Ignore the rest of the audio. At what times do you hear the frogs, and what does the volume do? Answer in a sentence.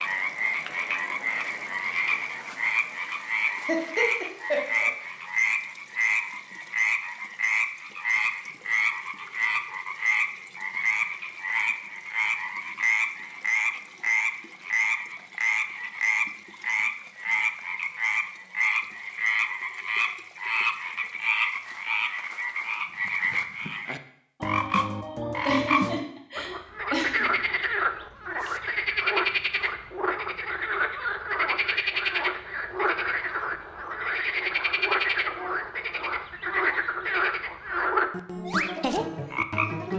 The frogs can be heard from 0.0 to 39.9 s, at a steady volume.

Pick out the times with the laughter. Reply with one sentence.
The laughter can be heard from 3.5 to 4.9 s and from 25.4 to 27.2 s.